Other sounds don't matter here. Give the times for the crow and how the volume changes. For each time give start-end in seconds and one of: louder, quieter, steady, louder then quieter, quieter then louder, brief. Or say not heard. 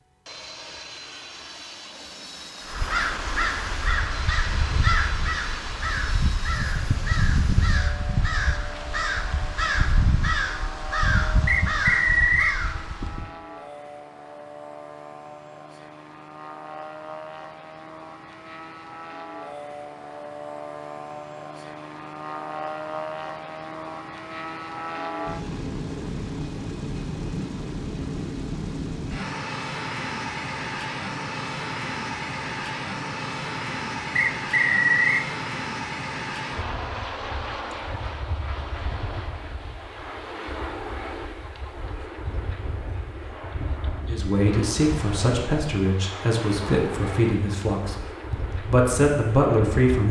2.6-13.3 steady.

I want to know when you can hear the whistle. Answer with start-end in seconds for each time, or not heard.
11.4-12.6, 34.1-35.2.